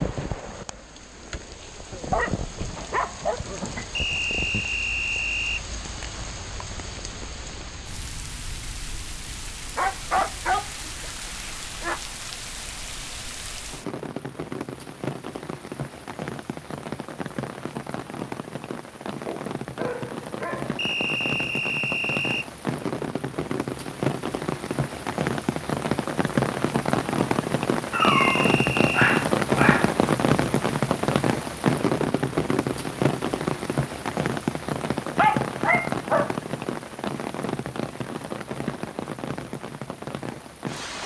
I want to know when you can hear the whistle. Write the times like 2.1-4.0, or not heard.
4.0-5.7, 20.8-22.5, 28.0-29.2.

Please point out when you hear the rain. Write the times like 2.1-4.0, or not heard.
0.0-41.0.